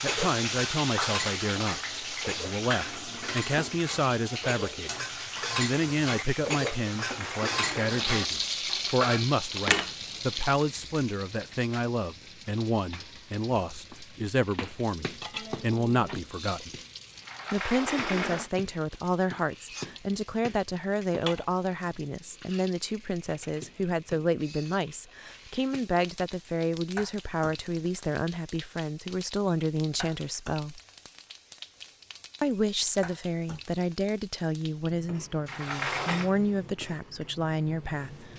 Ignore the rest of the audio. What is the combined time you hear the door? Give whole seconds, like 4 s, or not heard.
4 s.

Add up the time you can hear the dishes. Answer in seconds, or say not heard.
10 s.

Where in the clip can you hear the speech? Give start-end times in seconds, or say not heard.
0.0-5.0, 5.5-16.7, 17.5-30.8, 32.4-38.3.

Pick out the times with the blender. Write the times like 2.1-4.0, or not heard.
not heard.